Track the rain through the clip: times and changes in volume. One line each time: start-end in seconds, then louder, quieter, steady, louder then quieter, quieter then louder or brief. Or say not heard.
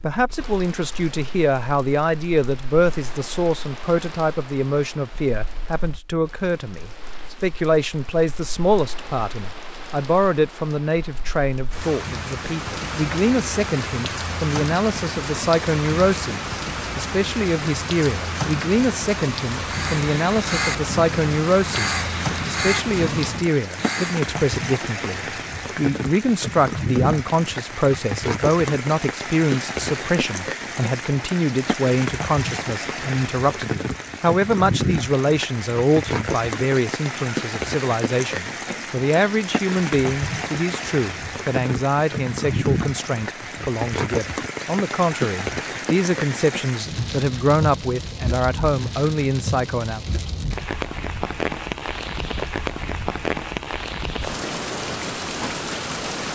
0.2-56.3 louder.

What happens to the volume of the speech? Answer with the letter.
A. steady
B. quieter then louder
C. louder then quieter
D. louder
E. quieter
A.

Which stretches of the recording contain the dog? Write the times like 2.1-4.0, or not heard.
not heard.